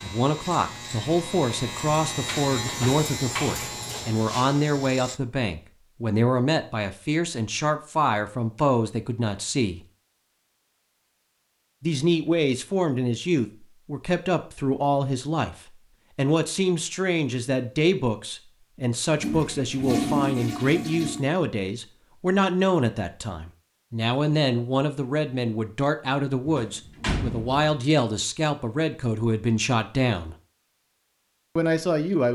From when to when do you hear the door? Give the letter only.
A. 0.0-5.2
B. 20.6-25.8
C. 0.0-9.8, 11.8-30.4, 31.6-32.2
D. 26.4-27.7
D.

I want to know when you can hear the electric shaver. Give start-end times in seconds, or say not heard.
0.0-5.2.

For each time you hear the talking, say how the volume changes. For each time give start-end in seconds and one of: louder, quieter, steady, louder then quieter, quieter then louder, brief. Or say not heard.
0.0-9.8 steady
11.8-30.4 steady
31.6-32.2 brief.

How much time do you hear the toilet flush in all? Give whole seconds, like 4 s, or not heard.
2 s.